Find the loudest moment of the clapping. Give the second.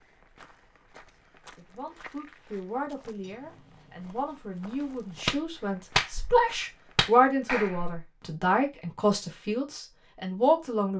6 s.